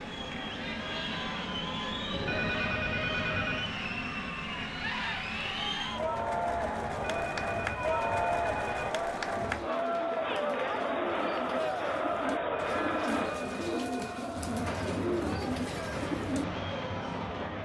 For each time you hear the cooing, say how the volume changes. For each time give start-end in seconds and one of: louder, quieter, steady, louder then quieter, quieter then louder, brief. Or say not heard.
9.2-16.4 louder.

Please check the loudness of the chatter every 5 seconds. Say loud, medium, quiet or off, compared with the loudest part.
medium, loud, loud, medium.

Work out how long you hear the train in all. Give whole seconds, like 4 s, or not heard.
11 s.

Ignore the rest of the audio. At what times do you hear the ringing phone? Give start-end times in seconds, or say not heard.
2.1-3.8, 6.9-8.9, 12.3-14.3.